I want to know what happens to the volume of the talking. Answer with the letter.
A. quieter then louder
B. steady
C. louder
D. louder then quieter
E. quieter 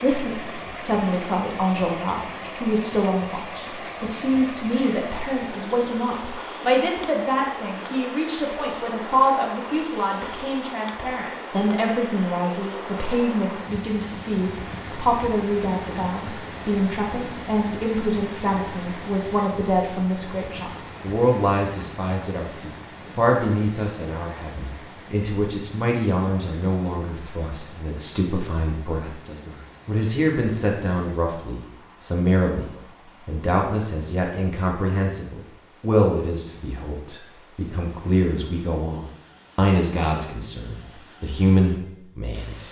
B.